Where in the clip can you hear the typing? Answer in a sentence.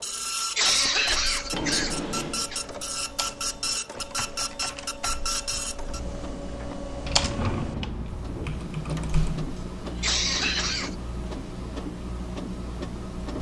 The typing can be heard from 0.6 to 9.5 s.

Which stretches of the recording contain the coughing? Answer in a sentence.
The coughing can be heard from 0.5 to 2.6 s and from 9.9 to 10.9 s.